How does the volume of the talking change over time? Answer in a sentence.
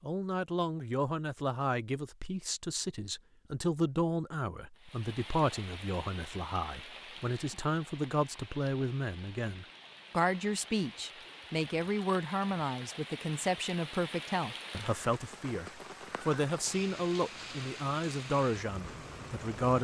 The volume of the talking stays about the same.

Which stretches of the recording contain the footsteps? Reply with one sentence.
The footsteps can't be heard in this clip.